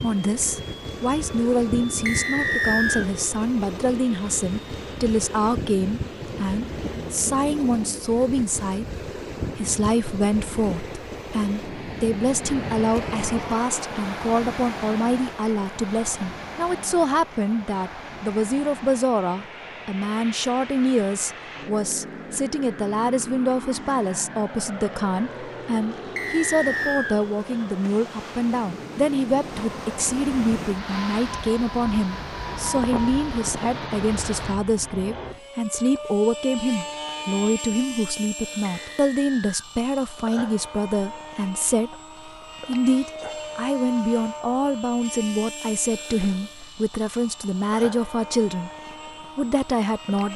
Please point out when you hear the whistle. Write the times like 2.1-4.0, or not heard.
2.0-3.0, 26.1-27.2, 38.6-39.6.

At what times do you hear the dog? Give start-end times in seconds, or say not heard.
not heard.